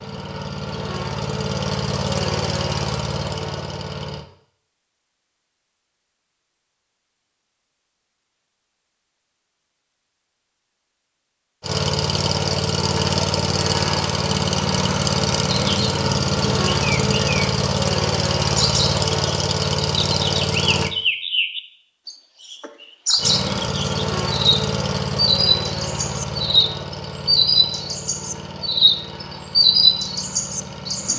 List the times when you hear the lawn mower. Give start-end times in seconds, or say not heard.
0.0-4.2, 11.6-20.9, 23.1-31.1.